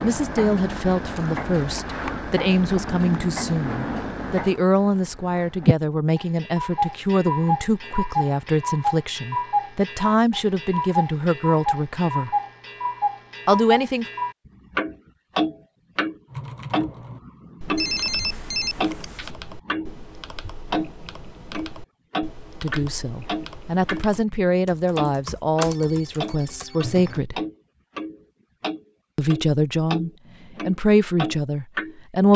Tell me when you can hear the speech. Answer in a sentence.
You can hear the speech from 0.0 to 12.3 s, from 13.4 to 14.1 s, from 22.6 to 27.4 s and from 29.1 to 32.3 s.